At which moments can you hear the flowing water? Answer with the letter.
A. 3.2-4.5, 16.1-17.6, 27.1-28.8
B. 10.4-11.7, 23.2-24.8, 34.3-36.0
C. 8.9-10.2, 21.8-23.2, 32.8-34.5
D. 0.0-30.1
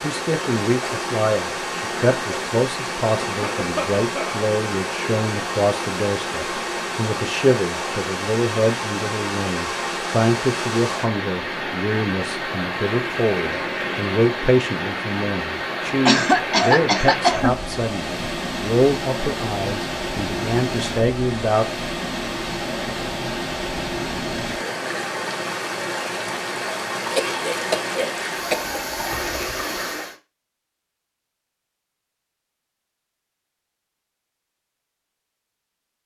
D.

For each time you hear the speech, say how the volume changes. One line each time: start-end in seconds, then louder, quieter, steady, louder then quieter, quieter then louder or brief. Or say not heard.
0.0-21.6 steady.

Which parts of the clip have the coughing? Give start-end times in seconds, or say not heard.
3.2-4.5, 16.1-17.6, 27.1-28.8.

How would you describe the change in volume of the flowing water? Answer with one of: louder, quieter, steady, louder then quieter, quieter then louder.
steady.